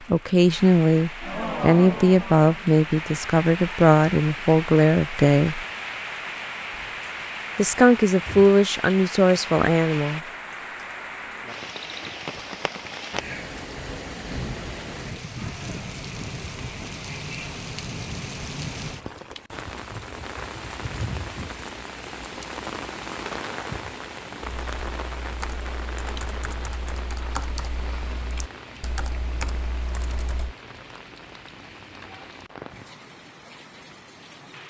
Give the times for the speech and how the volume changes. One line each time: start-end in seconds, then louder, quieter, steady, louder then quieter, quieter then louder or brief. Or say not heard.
0.1-5.6 steady
7.5-10.2 brief.